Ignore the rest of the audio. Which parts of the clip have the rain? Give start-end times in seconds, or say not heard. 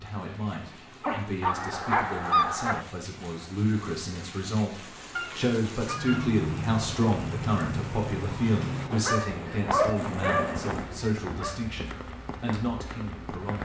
0.0-13.6.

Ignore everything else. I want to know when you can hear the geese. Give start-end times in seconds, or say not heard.
1.4-2.9, 5.2-6.3, 9.2-10.9.